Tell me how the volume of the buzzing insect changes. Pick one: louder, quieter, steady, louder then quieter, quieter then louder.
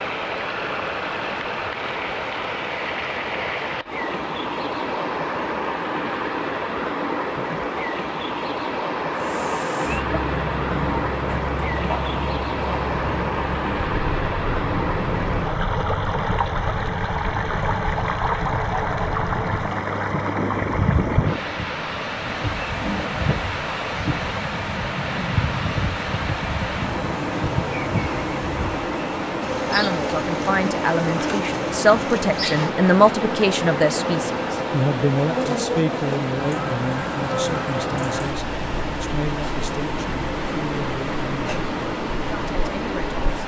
steady.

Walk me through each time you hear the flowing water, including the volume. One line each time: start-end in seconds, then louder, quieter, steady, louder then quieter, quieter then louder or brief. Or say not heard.
0.0-43.4 steady.